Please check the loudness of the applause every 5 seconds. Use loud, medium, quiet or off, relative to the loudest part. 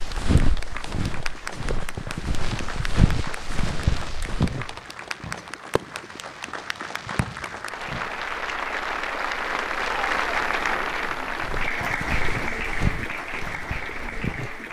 medium, loud, loud.